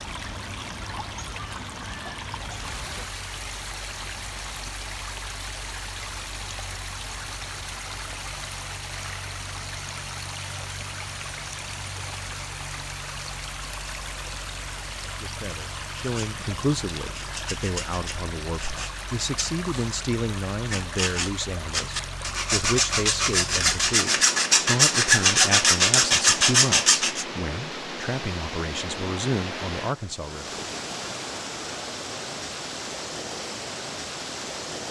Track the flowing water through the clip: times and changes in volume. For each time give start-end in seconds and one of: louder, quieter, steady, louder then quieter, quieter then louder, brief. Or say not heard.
0.0-34.8 steady.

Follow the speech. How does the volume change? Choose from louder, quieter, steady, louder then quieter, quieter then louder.
steady.